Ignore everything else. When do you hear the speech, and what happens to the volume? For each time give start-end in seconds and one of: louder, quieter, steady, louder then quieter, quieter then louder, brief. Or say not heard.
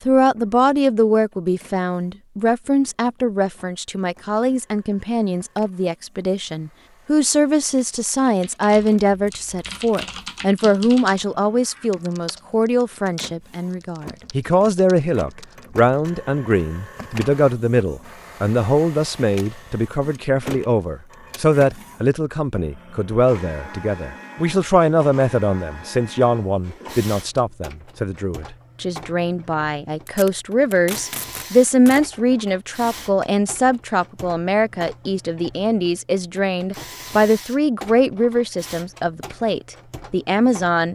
0.1-40.9 steady.